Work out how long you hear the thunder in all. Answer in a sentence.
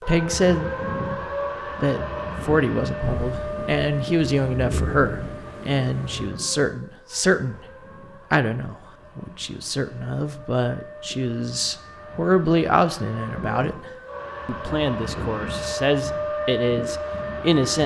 The thunder can be heard for 3 seconds in total.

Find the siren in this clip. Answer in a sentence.
You can hear the siren from 0.0 to 17.8 s.